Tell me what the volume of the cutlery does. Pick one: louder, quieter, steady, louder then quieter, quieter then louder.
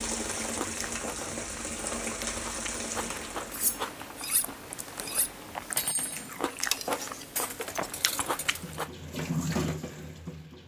louder then quieter.